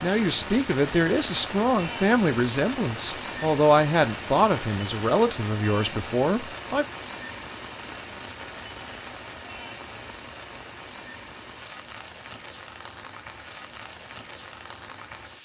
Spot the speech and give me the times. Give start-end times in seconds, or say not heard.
0.0-6.8.